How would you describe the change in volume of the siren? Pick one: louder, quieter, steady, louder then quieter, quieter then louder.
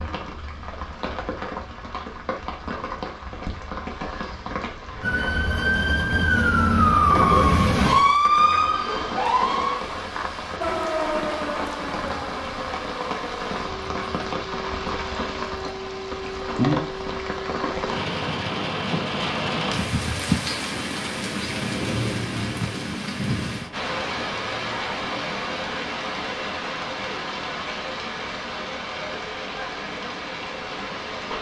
quieter.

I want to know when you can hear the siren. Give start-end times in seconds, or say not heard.
5.0-17.9.